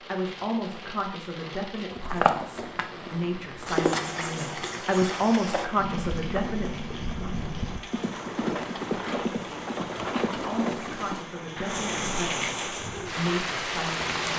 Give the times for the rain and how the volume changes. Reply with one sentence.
The rain can be heard from 0.0 to 14.3 s, getting louder.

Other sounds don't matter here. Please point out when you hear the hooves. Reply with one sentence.
The hooves can be heard from 1.8 to 12.2 s.